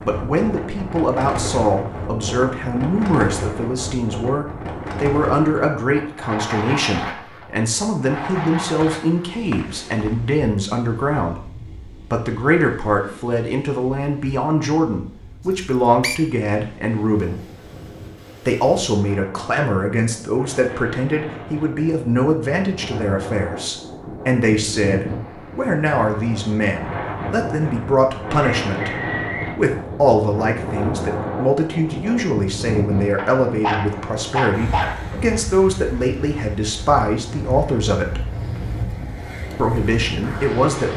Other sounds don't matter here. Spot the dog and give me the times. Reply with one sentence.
You can hear the dog from 33.1 to 35.2 s.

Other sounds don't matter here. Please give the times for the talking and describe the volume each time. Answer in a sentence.
The talking can be heard from 0.1 to 17.4 s, at a steady volume; from 18.4 to 38.2 s, at a steady volume; and briefly from 39.5 to 40.9 s.